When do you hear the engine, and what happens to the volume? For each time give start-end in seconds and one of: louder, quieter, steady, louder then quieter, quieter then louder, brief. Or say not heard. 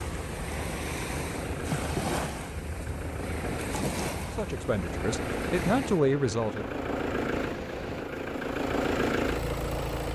0.0-10.1 louder.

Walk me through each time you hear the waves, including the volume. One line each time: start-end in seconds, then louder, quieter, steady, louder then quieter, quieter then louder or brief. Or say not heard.
0.0-8.1 quieter.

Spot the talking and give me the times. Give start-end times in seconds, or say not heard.
4.3-6.8.